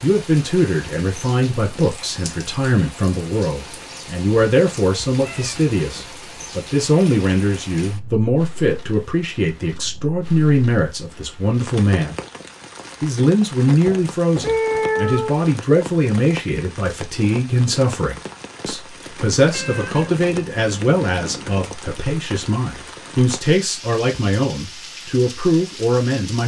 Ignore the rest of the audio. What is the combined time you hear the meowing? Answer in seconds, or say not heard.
5 s.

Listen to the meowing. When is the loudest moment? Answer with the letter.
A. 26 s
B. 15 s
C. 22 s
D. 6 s
B.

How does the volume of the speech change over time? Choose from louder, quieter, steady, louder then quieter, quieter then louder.
steady.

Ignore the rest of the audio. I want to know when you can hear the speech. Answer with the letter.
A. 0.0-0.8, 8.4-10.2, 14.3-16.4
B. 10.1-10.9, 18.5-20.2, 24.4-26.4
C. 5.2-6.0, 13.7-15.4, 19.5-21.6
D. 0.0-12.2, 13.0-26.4
D.